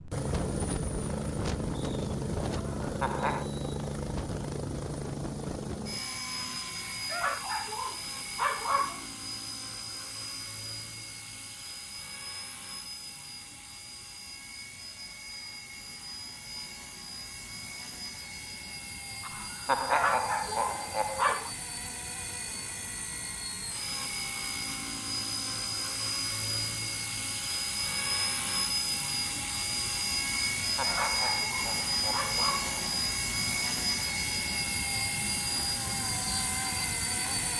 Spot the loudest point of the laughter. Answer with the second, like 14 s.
20 s.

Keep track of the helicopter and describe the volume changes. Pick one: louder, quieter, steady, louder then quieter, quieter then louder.
quieter then louder.